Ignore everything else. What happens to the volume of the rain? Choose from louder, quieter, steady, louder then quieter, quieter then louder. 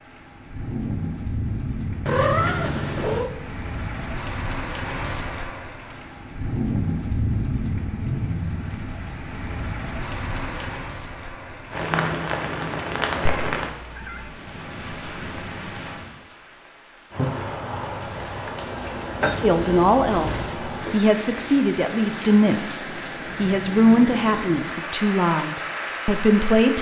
steady.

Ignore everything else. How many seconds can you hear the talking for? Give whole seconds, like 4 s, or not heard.
7 s.